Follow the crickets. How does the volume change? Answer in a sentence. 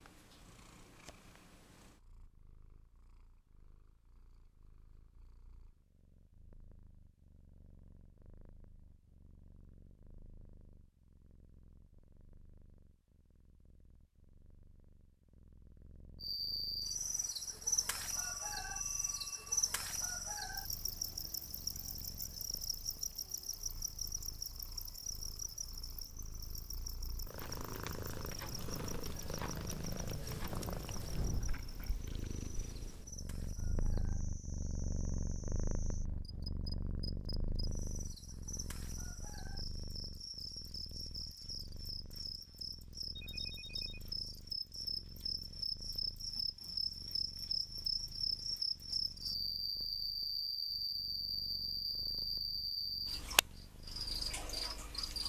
The loudness of the crickets goes down, then up.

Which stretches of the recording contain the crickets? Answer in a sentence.
You can hear the crickets from 16.2 to 55.2 s.